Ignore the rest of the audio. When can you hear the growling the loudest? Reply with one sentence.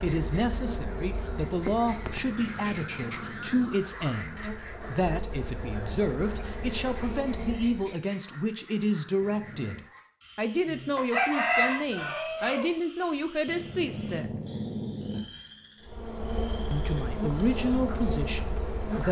The loudest moment of the growling is at 15 seconds.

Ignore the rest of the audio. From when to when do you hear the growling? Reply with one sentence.
The growling can be heard from 1.9 to 3.9 s, from 9.2 to 9.8 s and from 13.4 to 15.6 s.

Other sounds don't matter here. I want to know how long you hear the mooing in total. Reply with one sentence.
You can't hear the mooing here.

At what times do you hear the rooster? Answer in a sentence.
You can hear the rooster from 10.9 to 12.7 s.